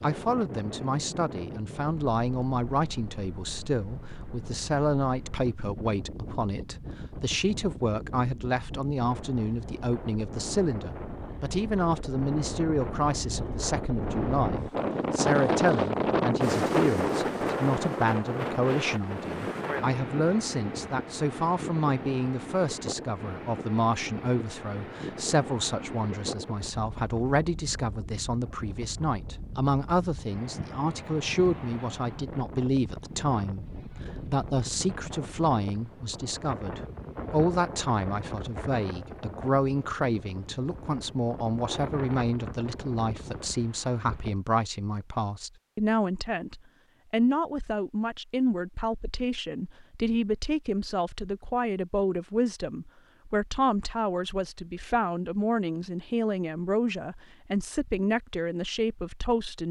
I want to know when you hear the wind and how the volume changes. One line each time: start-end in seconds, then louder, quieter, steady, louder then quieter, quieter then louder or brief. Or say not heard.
0.0-44.5 louder then quieter.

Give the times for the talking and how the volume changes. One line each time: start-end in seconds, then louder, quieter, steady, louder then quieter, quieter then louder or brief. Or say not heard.
0.0-59.6 steady.